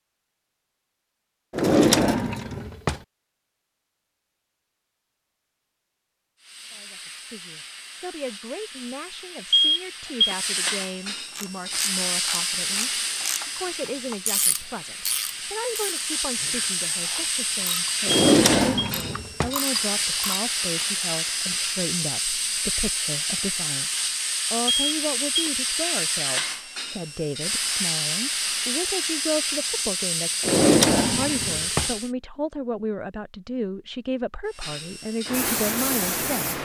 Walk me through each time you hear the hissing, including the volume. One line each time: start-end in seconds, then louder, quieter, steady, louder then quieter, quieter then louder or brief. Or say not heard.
6.3-32.1 louder
34.5-36.6 brief.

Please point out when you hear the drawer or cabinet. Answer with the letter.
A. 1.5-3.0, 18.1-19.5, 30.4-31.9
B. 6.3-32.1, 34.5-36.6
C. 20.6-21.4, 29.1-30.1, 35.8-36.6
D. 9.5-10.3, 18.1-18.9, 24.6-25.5
A.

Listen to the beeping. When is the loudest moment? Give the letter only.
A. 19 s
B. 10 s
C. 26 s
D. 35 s
B.